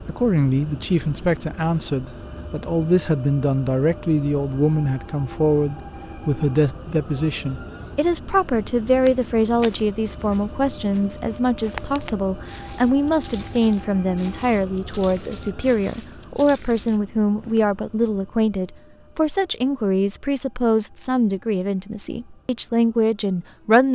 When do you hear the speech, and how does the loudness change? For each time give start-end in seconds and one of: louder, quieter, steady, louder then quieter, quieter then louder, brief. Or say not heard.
0.0-23.9 steady.